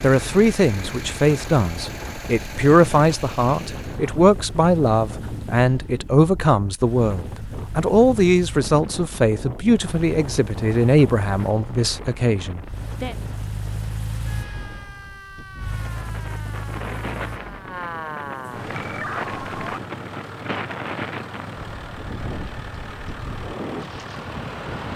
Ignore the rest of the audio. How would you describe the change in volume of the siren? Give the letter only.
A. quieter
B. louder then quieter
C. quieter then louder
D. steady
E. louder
E.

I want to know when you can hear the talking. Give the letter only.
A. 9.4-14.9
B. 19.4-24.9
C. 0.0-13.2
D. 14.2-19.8
C.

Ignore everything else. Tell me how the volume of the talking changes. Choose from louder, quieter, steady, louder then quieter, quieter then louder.
steady.